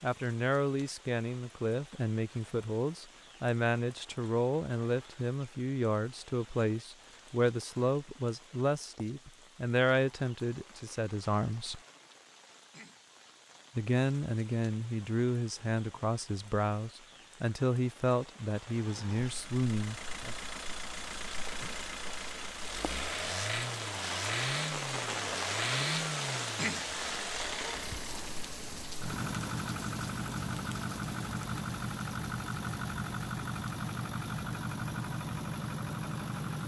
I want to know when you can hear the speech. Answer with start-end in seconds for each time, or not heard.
0.0-11.8, 13.8-20.4.